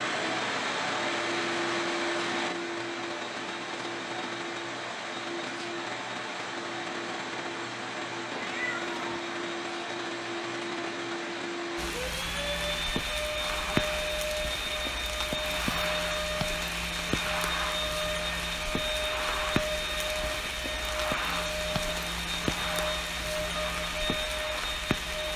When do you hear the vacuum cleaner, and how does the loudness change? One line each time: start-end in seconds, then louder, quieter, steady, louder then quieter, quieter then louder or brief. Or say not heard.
0.0-25.3 steady.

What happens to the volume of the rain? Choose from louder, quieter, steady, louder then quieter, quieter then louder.
steady.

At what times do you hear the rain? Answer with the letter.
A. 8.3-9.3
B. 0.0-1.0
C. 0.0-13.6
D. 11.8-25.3
D.